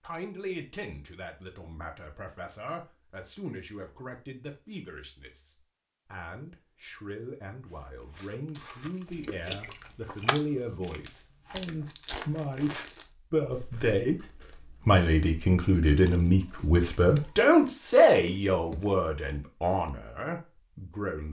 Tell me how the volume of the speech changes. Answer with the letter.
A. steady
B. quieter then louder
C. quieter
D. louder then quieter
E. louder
E.